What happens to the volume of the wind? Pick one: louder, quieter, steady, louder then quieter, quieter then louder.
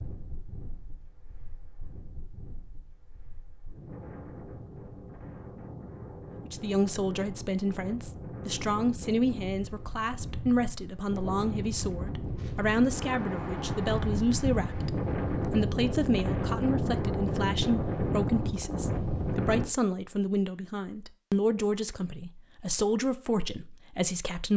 louder.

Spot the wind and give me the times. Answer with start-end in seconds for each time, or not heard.
0.0-19.6.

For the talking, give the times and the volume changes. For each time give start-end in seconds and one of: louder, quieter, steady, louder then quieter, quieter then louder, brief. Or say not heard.
6.5-24.5 steady.